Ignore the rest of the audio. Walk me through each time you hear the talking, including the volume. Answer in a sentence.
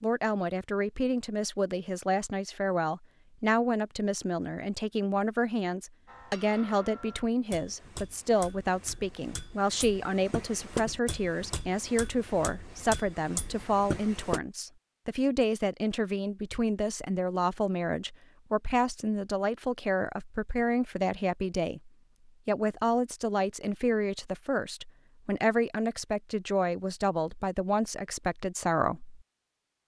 You can hear the talking from 0.0 to 29.2 s, at a steady volume.